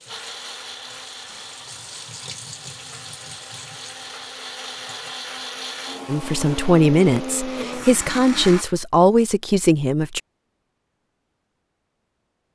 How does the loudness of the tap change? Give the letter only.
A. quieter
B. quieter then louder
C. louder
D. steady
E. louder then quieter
E.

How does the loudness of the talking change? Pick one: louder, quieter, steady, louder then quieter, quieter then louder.
quieter then louder.